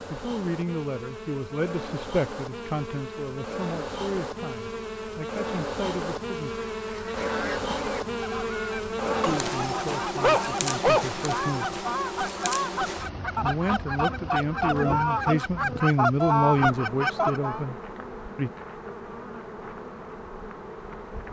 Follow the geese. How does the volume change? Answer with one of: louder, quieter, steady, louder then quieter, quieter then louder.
louder.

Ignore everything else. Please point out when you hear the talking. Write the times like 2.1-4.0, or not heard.
0.1-6.5, 9.2-11.8, 13.4-18.5.